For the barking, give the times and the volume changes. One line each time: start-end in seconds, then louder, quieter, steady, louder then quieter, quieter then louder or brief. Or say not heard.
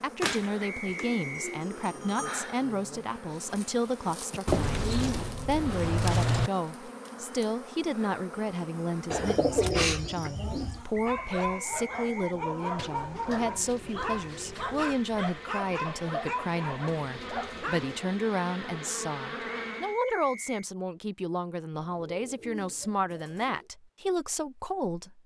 10.8-17.9 steady.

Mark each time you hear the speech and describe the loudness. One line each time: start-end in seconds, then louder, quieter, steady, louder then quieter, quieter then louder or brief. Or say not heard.
0.0-25.2 steady.